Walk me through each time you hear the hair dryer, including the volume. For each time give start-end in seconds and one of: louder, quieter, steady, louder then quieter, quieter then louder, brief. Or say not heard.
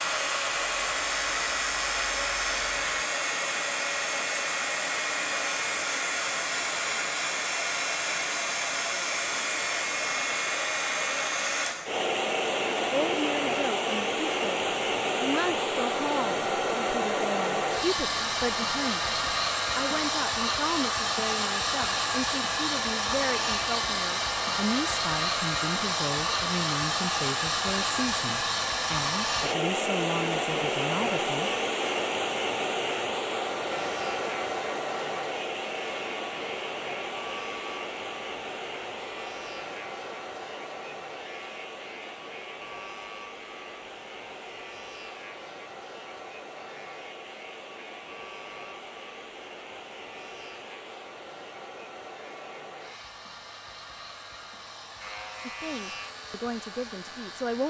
0.0-57.6 quieter.